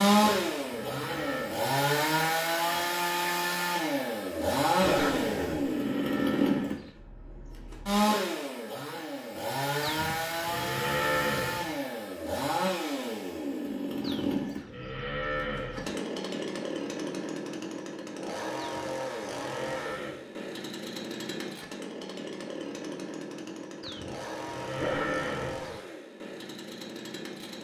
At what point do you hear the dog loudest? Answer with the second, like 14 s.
5 s.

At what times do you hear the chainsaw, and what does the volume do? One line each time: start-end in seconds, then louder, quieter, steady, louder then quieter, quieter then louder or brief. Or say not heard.
0.0-27.5 quieter.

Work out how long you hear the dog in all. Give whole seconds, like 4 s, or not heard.
2 s.